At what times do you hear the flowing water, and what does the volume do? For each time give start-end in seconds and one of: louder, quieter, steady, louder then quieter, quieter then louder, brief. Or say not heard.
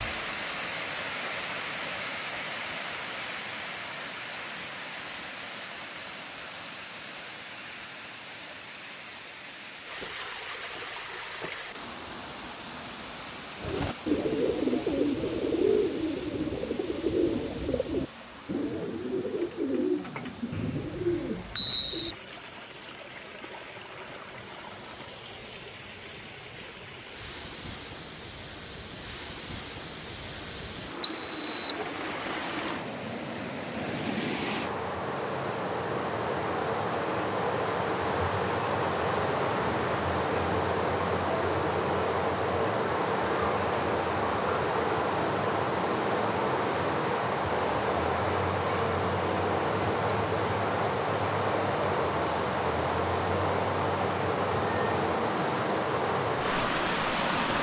0.0-57.5 quieter then louder.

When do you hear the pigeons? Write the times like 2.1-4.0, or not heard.
13.6-22.1.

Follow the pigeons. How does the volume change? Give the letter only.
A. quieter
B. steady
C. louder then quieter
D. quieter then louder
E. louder
A.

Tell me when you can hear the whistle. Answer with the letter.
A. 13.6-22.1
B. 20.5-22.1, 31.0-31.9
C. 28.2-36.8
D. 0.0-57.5
B.